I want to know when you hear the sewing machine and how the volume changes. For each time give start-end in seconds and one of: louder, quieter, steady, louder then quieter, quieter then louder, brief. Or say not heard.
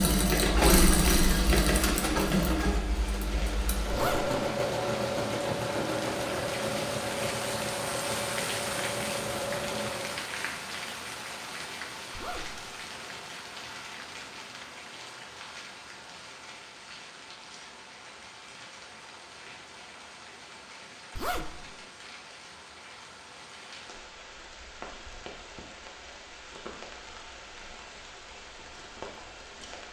0.0-10.2 quieter.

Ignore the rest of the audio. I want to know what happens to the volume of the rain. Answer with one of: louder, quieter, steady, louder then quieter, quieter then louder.
quieter.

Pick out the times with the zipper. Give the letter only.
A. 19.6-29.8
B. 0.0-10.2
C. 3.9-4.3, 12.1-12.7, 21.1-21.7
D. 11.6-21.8
C.